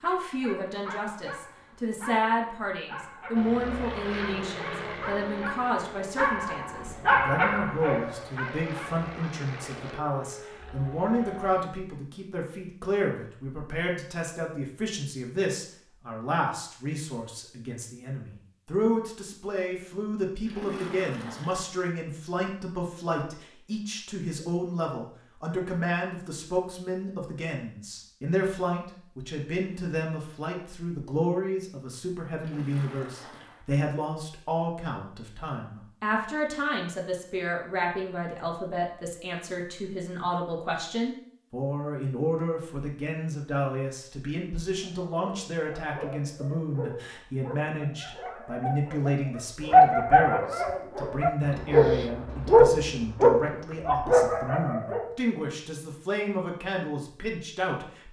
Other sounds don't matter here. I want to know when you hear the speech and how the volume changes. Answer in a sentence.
You can hear the speech from 0.0 to 58.0 s, at a steady volume.